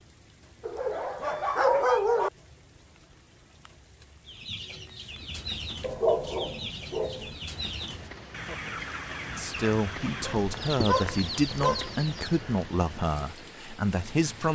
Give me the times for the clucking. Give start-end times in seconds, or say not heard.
4.2-12.4.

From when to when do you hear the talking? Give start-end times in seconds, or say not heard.
9.2-14.5.